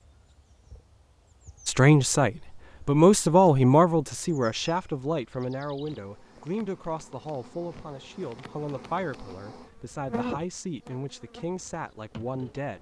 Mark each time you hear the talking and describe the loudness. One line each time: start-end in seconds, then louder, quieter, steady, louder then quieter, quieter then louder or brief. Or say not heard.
1.6-12.7 quieter.